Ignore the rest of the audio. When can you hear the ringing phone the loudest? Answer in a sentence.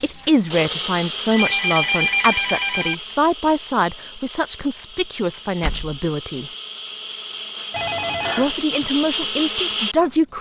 The loudest moment of the ringing phone is at 2 seconds.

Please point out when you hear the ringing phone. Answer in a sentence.
The ringing phone can be heard from 1.3 to 3.0 s and from 7.7 to 8.6 s.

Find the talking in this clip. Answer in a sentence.
The talking can be heard from 0.0 to 6.5 s and from 8.3 to 10.3 s.